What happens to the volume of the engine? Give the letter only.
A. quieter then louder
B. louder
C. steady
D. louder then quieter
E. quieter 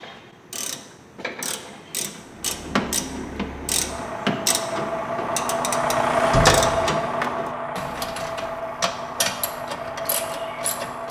D.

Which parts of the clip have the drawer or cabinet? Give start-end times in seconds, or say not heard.
6.3-6.8.